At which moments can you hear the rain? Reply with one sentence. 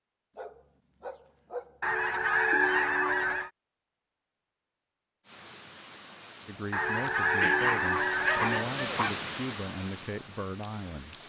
You can hear the rain from 5.2 to 11.2 s.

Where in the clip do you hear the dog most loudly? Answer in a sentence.
The loudest moment of the dog is at 8 seconds.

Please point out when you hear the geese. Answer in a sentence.
You can hear the geese from 1.8 to 3.5 s and from 6.7 to 8.7 s.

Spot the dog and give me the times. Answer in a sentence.
The dog can be heard from 0.3 to 1.9 s and from 7.4 to 9.3 s.